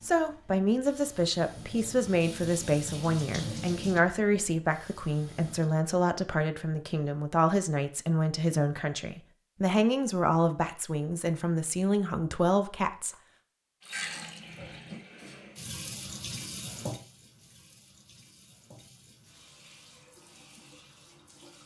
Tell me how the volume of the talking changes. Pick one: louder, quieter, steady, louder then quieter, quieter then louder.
steady.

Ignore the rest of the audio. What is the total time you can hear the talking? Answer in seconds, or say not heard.
13 s.